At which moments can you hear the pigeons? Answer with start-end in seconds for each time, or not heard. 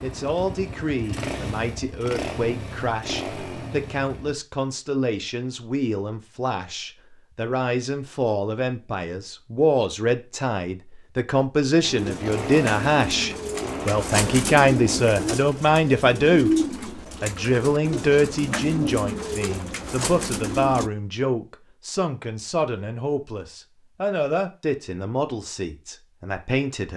11.9-20.9.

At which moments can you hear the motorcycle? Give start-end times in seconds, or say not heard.
0.0-4.3, 11.8-15.0.